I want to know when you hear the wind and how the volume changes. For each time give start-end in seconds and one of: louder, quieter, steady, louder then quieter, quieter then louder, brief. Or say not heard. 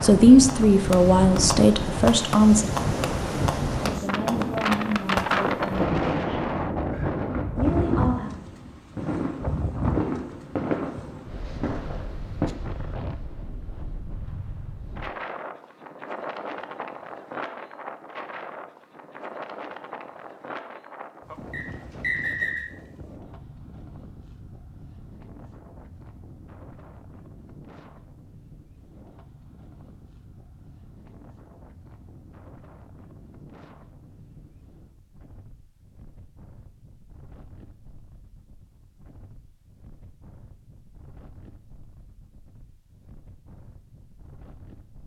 0.0-45.0 quieter.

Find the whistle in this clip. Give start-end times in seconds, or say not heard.
21.5-22.6.